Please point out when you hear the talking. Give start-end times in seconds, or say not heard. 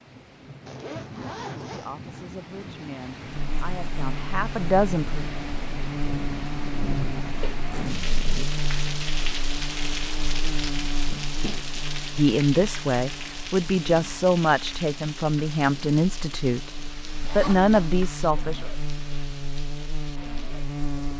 1.6-5.2, 12.2-18.7.